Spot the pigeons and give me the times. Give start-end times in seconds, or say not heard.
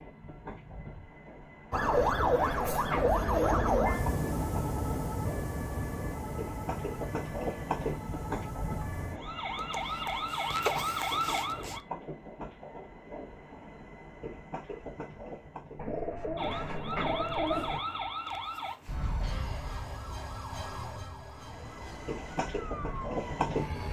1.7-3.8, 15.8-17.8.